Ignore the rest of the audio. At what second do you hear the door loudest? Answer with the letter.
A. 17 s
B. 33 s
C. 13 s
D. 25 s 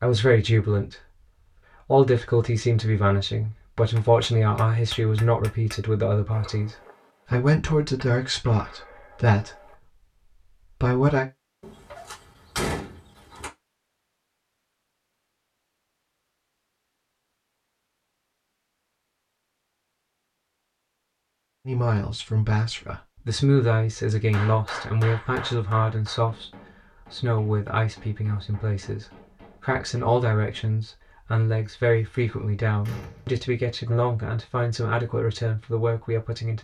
C.